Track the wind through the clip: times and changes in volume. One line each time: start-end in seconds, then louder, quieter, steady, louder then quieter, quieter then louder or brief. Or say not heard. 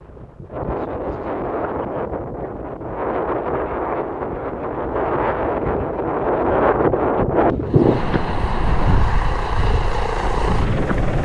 0.0-11.2 louder then quieter.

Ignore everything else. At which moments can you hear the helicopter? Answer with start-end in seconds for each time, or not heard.
7.7-11.2.